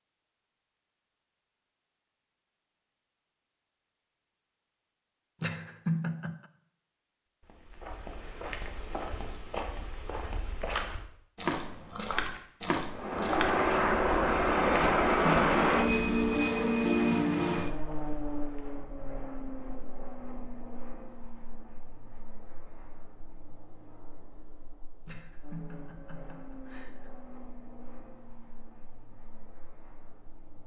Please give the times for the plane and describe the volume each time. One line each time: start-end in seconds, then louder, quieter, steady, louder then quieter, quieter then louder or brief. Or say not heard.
12.9-30.6 quieter.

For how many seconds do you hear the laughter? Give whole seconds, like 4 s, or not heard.
4 s.